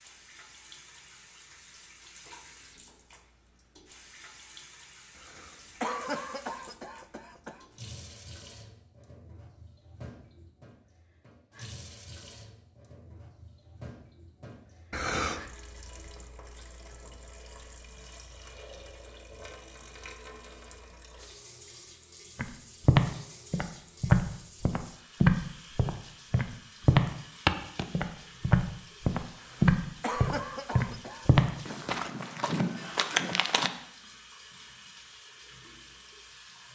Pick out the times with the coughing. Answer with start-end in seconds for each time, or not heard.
5.2-7.7, 14.9-15.5, 29.4-31.9.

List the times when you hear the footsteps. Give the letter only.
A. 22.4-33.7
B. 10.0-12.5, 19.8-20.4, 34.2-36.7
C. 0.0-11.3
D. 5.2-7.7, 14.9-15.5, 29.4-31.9
A.